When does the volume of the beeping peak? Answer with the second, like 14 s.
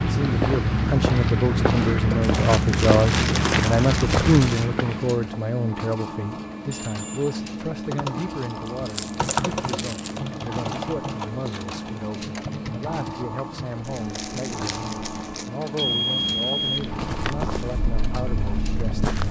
16 s.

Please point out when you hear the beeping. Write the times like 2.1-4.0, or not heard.
6.7-7.4, 15.8-17.2.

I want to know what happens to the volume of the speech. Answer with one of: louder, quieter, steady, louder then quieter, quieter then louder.
quieter.